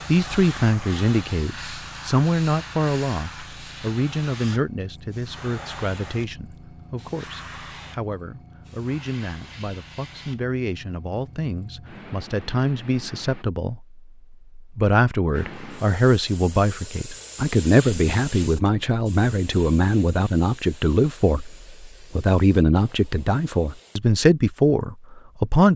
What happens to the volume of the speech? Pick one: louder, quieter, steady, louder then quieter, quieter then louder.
quieter then louder.